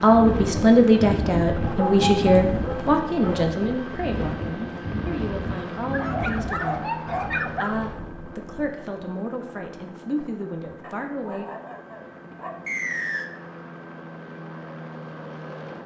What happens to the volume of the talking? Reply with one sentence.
The loudness of the talking goes down.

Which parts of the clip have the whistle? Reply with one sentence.
The whistle can be heard from 12.7 to 13.3 s.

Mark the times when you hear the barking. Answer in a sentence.
The barking can be heard from 1.6 to 3.5 s, from 5.9 to 7.8 s and from 10.8 to 12.6 s.